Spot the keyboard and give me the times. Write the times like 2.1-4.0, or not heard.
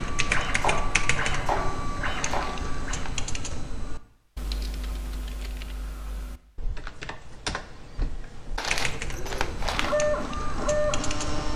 0.0-11.5.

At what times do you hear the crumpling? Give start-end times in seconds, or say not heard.
2.2-3.1, 8.6-9.9.